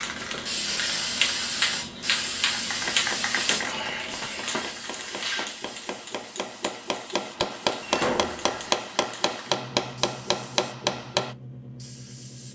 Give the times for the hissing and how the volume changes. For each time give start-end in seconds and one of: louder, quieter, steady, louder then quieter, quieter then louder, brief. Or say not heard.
0.0-12.5 quieter.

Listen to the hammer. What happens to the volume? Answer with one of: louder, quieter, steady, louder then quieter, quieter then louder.
louder.